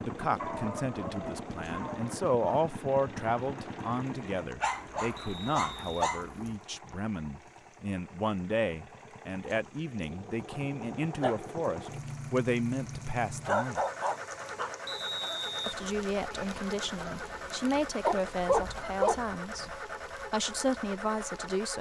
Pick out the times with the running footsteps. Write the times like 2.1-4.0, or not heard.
not heard.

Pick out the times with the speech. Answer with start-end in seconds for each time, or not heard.
0.0-13.8, 15.7-21.7.